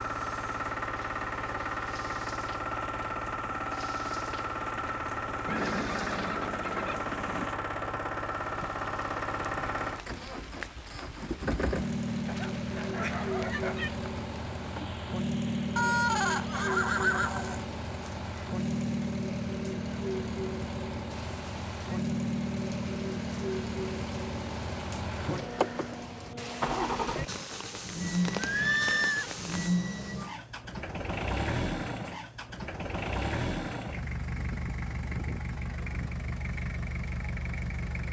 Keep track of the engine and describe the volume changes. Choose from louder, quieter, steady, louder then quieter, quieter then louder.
steady.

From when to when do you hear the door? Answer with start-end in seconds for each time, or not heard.
not heard.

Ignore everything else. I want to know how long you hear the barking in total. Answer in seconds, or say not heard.
2 s.